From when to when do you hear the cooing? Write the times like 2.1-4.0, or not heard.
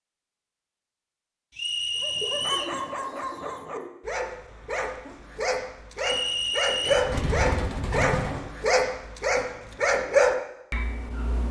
2.2-3.9, 6.8-8.5.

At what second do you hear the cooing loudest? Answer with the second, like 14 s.
8 s.